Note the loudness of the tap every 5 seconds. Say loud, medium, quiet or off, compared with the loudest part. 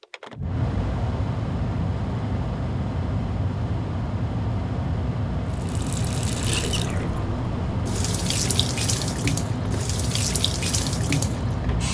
off, loud, loud.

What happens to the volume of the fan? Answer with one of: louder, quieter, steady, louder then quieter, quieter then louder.
steady.